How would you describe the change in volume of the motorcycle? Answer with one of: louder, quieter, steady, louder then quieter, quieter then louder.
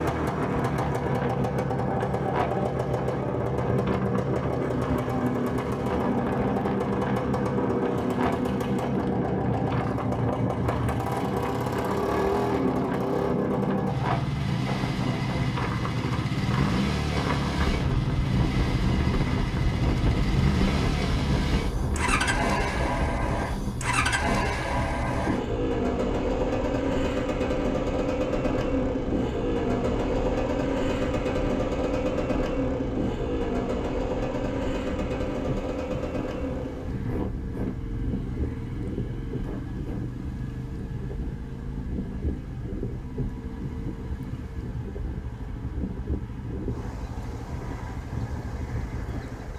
quieter.